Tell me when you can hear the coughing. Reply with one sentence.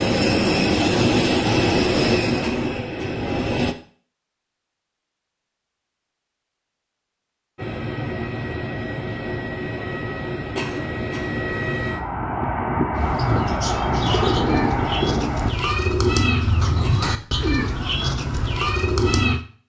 The coughing can be heard from 2.4 to 3.1 s, from 10.6 to 11.3 s and from 16.8 to 17.6 s.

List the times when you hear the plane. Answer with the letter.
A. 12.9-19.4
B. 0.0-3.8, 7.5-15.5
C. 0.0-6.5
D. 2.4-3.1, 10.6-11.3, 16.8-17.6
B.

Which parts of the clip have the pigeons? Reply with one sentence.
The pigeons can be heard from 12.9 to 19.4 s.